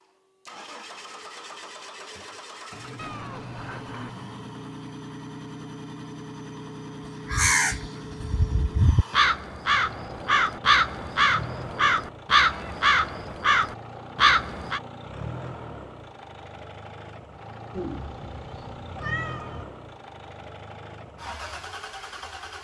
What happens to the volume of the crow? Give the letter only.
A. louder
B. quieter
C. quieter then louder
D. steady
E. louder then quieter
A.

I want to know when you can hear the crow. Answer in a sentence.
The crow can be heard from 7.2 to 14.8 s.